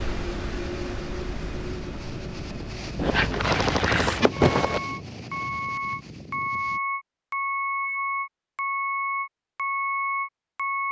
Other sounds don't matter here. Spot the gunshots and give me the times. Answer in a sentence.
You can hear the gunshots from 3.0 to 4.8 s.